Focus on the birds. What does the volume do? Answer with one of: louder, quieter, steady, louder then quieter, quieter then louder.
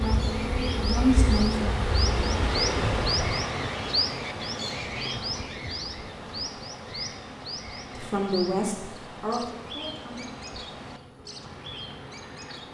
quieter.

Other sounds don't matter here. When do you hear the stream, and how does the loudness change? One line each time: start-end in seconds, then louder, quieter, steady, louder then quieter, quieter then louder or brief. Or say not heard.
0.0-12.7 quieter.